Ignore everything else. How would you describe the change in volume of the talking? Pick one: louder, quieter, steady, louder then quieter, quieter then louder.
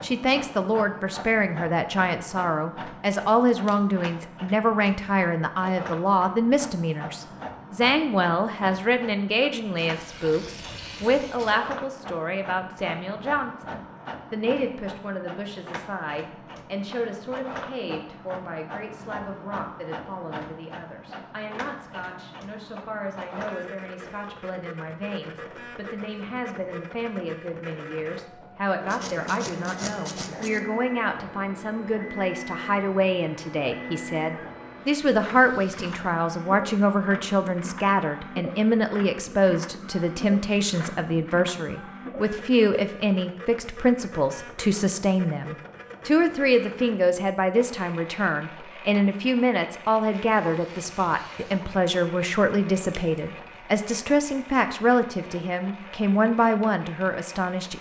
quieter then louder.